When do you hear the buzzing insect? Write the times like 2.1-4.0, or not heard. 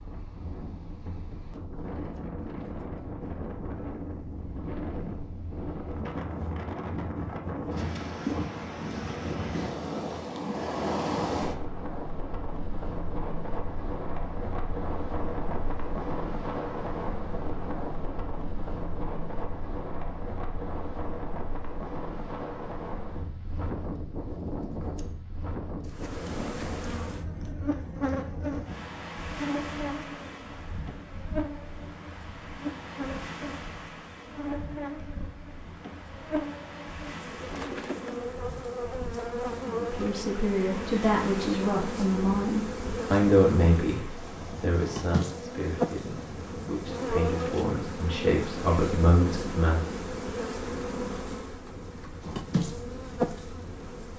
25.9-54.1.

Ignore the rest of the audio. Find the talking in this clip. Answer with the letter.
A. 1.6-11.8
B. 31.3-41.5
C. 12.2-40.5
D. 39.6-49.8
D.